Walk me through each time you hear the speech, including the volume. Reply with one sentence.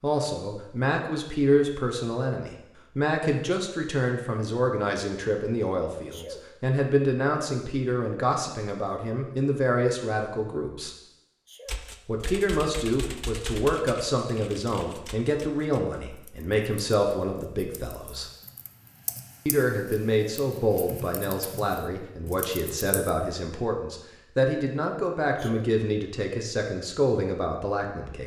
The speech can be heard from 0.0 to 10.9 s, at a steady volume; from 12.1 to 18.2 s, at a steady volume; and from 19.4 to 28.2 s, at a steady volume.